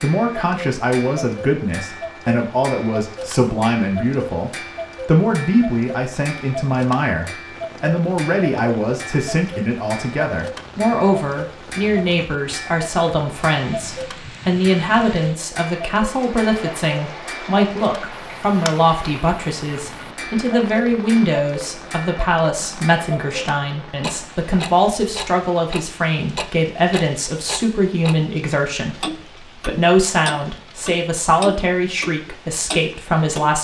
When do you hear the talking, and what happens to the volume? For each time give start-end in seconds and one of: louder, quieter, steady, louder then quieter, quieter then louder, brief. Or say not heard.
0.0-33.6 steady.